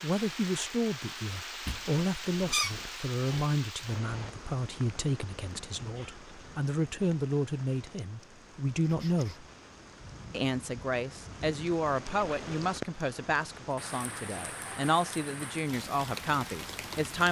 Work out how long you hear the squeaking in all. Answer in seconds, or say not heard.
3 s.